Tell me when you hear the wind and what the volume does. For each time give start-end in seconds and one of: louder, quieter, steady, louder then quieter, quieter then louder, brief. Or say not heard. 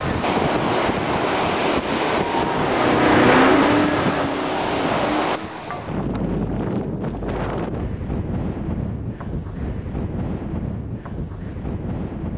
0.0-12.3 quieter.